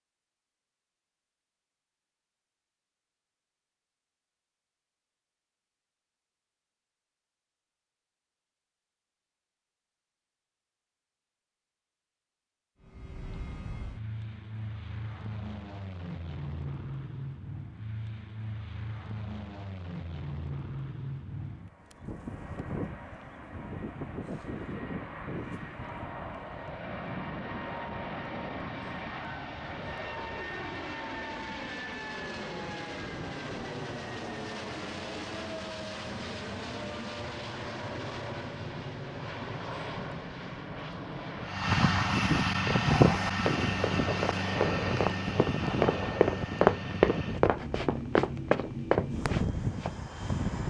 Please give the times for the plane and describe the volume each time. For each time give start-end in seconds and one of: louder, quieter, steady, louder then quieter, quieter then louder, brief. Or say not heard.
12.8-50.6 louder.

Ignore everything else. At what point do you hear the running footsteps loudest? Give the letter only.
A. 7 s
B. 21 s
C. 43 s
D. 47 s
D.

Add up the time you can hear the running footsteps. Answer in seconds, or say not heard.
7 s.